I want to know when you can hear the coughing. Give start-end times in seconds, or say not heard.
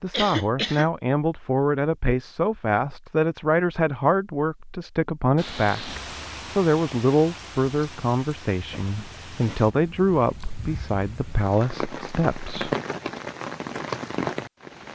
0.1-0.9, 8.7-9.8.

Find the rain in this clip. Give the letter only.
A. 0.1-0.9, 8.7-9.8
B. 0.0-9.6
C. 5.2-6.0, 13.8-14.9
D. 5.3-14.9
D.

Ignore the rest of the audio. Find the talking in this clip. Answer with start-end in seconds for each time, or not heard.
0.0-12.8.